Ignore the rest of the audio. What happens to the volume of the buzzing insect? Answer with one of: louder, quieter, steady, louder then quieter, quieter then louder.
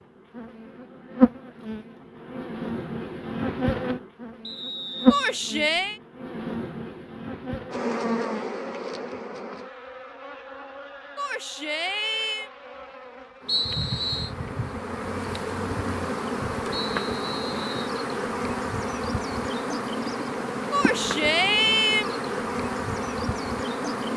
quieter then louder.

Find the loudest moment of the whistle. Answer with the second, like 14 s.
14 s.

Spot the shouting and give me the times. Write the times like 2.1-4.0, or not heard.
5.1-6.0, 11.2-12.5, 20.7-22.2.